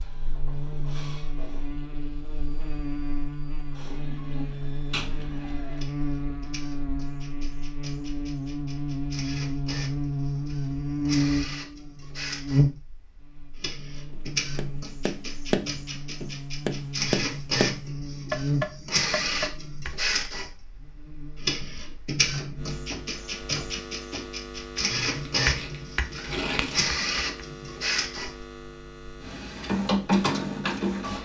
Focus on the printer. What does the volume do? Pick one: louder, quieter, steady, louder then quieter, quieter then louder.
louder.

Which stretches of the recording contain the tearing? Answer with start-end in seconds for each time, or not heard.
4.9-5.5, 25.1-26.9.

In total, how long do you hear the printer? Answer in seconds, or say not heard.
31 s.